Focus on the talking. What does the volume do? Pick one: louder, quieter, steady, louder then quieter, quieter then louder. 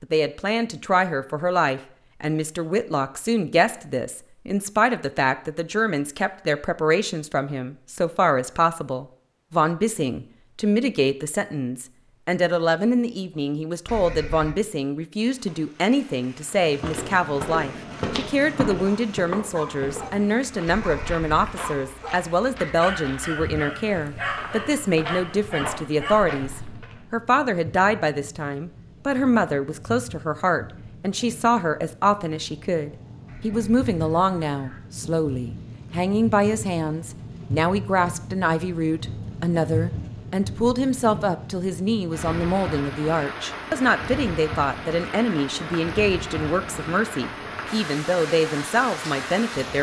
steady.